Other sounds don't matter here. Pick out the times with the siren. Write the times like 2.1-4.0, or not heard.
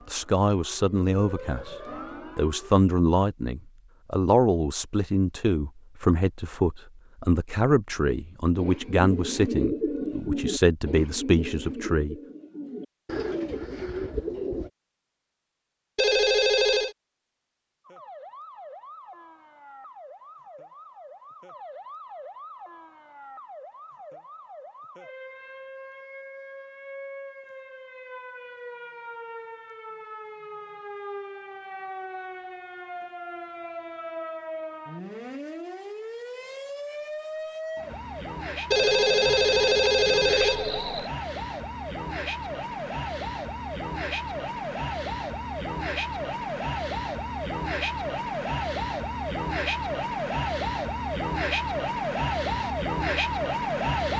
0.0-2.8, 17.9-54.1.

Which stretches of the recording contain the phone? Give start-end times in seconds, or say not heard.
15.9-16.9, 38.7-41.1.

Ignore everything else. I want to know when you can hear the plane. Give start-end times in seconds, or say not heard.
not heard.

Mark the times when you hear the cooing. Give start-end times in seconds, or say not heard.
8.6-14.7.